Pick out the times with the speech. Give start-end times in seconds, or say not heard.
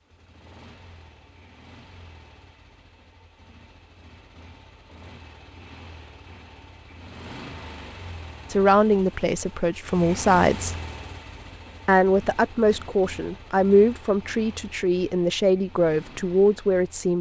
8.5-10.8, 11.8-17.1.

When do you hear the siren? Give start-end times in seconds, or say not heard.
not heard.